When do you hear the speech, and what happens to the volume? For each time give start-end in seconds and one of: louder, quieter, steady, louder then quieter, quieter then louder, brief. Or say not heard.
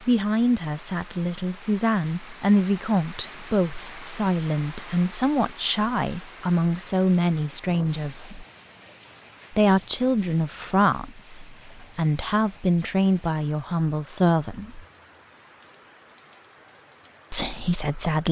0.1-8.4 steady
9.5-14.8 steady
17.3-18.2 brief.